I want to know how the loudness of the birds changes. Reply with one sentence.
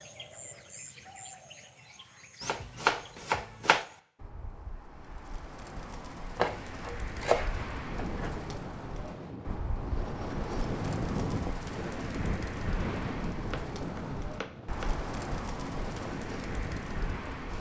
The loudness of the birds goes up.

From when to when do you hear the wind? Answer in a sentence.
You can hear the wind from 7.8 to 17.5 s.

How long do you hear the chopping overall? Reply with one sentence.
You can hear the chopping for 5 seconds altogether.